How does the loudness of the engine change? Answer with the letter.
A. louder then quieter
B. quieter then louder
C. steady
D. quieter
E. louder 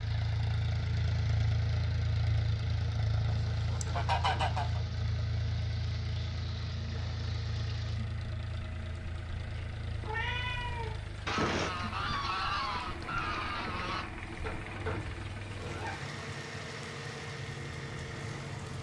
D.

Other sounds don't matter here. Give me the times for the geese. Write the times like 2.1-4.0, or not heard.
3.2-4.8, 11.2-14.1.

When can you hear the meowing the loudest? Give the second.
10 s.